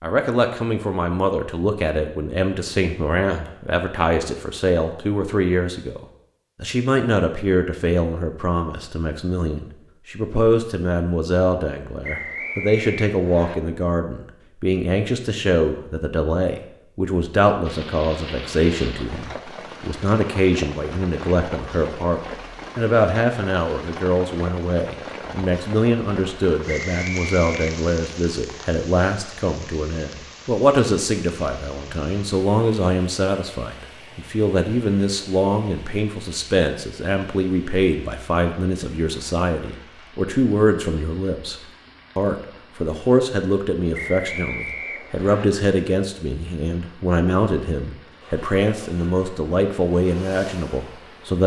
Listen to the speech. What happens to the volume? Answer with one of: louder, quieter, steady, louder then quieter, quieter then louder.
steady.